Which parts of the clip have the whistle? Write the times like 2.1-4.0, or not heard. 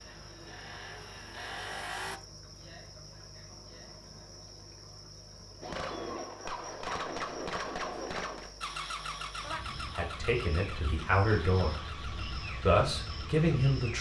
not heard.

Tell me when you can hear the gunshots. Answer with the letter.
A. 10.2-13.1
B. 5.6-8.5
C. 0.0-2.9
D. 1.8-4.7
B.